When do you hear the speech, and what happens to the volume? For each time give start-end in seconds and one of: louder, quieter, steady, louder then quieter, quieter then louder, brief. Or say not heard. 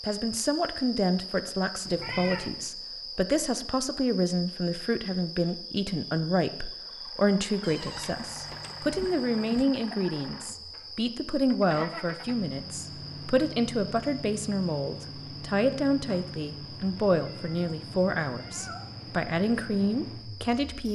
0.0-20.9 steady.